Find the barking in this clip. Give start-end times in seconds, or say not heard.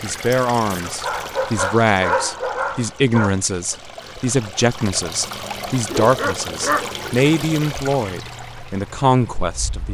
0.7-3.3, 5.8-7.3.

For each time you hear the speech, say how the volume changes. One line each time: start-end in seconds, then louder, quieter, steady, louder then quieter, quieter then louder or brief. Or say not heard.
0.0-9.9 steady.